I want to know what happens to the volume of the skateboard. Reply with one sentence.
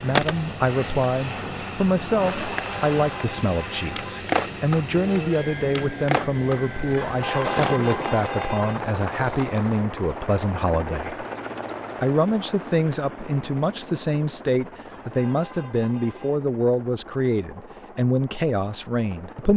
The volume of the skateboard goes up.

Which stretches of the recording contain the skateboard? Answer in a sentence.
The skateboard can be heard from 0.1 to 9.8 s.